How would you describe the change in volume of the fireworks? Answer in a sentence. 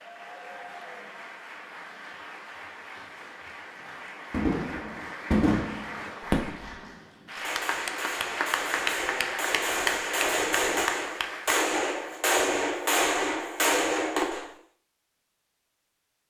The loudness of the fireworks goes down, then up.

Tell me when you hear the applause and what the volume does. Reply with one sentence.
You can hear the applause from 0.0 to 12.2 s, getting louder.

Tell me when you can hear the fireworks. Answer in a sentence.
The fireworks can be heard from 4.3 to 14.5 s.